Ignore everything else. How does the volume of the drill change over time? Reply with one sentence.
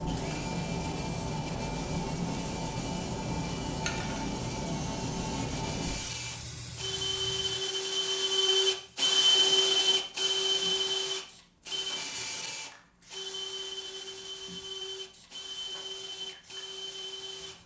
The loudness of the drill goes up, then down.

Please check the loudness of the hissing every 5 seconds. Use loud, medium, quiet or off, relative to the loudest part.
loud, medium, quiet, quiet.